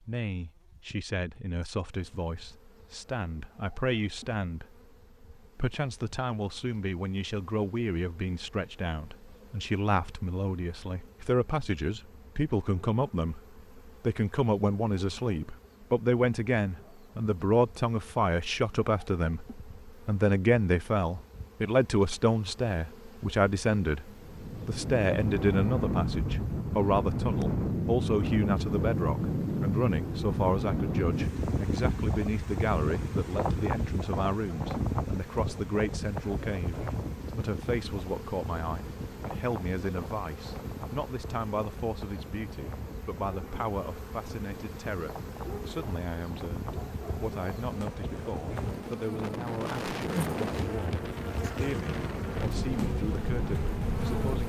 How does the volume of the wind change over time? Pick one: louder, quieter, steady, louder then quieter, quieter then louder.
quieter then louder.